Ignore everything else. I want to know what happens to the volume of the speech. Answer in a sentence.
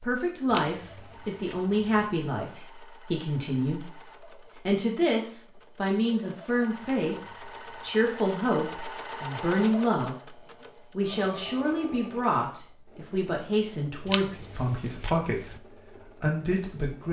The volume of the speech stays about the same.